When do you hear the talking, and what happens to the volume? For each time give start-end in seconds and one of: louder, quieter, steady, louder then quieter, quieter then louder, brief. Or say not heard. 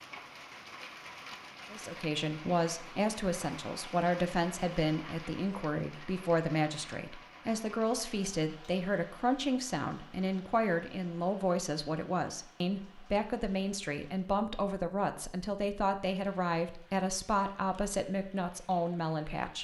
1.7-19.5 steady.